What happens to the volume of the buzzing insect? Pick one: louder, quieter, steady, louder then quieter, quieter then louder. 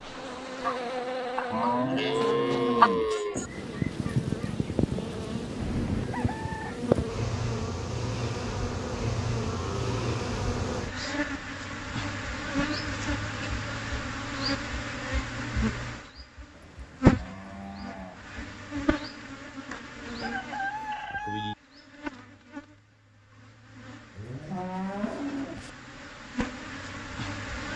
quieter.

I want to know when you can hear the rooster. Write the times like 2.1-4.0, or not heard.
5.5-6.8, 20.2-21.6.